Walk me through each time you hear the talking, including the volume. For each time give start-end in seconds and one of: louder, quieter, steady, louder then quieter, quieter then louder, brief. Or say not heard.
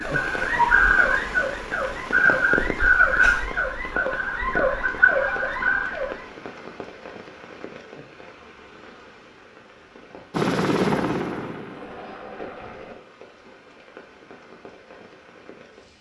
not heard.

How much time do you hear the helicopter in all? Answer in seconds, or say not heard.
3 s.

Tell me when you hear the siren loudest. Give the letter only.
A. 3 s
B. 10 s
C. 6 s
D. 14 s
A.